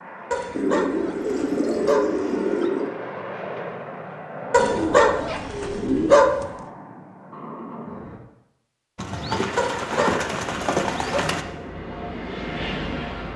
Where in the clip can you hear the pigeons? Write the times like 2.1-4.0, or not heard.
0.5-2.9, 4.5-6.1, 8.9-11.4.